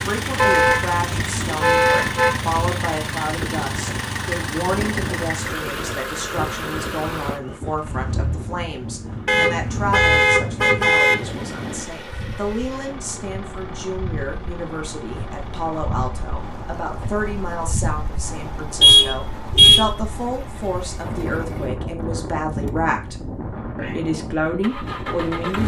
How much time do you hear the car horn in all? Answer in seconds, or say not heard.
4 s.